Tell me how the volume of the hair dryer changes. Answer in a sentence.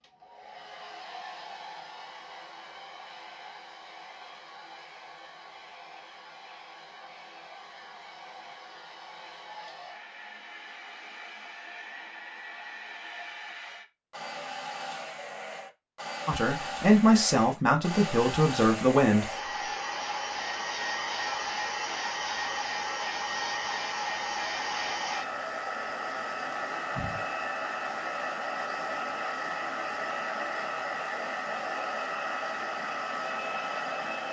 The volume of the hair dryer goes up.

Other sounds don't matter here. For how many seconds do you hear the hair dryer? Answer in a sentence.
The hair dryer can be heard for 34 seconds in total.